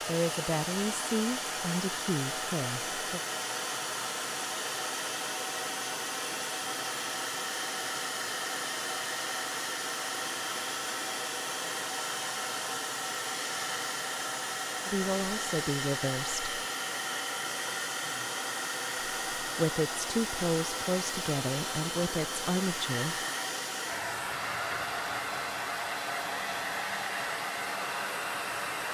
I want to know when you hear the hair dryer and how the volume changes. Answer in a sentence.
The hair dryer can be heard from 0.0 to 28.8 s, at a steady volume.